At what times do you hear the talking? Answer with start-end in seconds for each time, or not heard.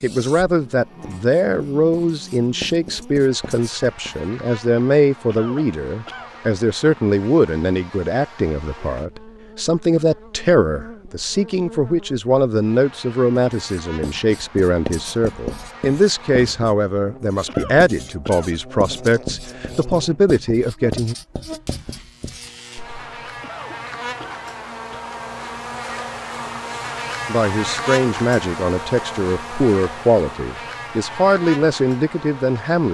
0.0-21.1, 27.2-32.9.